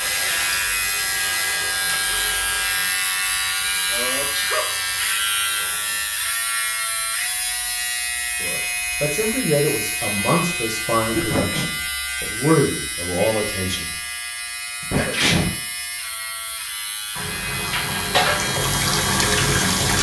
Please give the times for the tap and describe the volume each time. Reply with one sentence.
The tap can be heard from 0.0 to 6.0 s, getting quieter; and briefly from 17.1 to 19.9 s.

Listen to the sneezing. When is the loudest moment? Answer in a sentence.
The loudest moment of the sneezing is at 15 seconds.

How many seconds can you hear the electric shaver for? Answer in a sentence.
The electric shaver can be heard for 20 seconds in total.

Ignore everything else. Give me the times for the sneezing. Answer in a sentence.
You can hear the sneezing from 3.9 to 4.8 s, from 11.1 to 11.7 s and from 14.8 to 15.6 s.